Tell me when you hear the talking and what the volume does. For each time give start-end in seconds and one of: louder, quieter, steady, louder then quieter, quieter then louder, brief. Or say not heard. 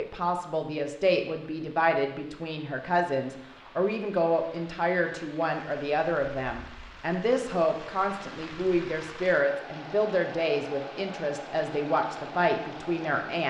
0.0-13.4 steady.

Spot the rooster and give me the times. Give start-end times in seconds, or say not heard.
not heard.